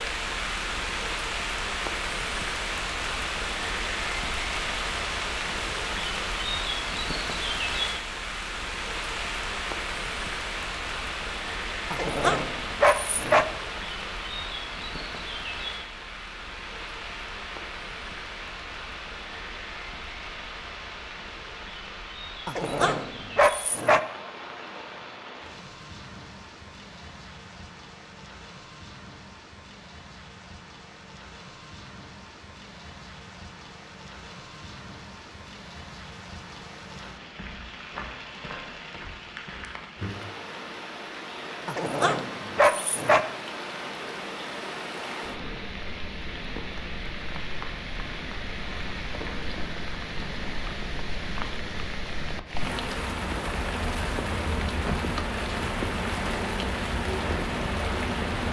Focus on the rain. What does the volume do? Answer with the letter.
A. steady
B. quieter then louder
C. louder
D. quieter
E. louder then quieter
B.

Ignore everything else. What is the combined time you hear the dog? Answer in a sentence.
You can hear the dog for 5 seconds altogether.